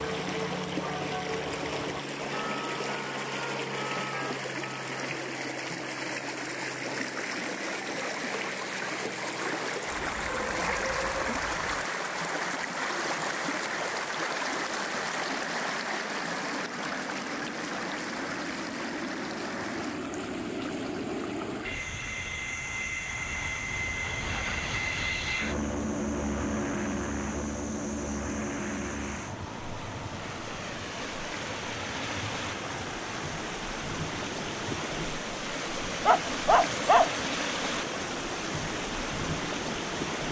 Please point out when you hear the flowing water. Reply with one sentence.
The flowing water can be heard from 0.0 to 40.2 s.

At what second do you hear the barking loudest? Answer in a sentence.
The volume of the barking peaks at 37 seconds.